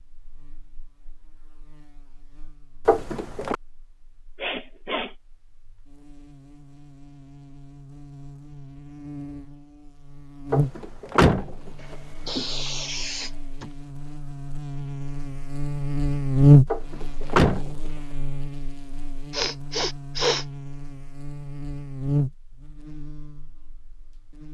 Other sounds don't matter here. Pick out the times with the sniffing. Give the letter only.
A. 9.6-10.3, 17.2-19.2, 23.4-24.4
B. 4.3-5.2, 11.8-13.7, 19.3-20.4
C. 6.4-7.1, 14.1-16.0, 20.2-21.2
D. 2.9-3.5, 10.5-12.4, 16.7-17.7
B.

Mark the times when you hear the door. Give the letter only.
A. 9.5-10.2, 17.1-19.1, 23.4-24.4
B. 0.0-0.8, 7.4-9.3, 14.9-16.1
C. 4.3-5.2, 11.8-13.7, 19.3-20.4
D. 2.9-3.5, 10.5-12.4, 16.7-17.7
D.